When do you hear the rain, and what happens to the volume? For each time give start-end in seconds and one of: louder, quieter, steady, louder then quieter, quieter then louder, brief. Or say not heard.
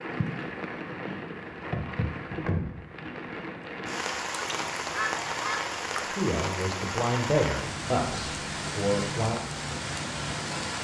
0.0-10.7 steady.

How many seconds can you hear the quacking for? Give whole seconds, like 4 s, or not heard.
2 s.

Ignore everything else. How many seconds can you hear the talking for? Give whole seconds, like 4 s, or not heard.
3 s.